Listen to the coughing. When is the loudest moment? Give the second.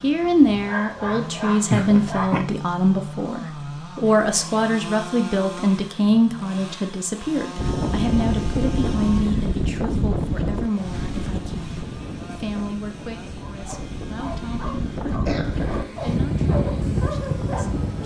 2 s.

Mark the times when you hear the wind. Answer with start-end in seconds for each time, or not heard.
7.5-18.0.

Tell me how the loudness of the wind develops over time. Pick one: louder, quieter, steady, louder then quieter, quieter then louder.
quieter then louder.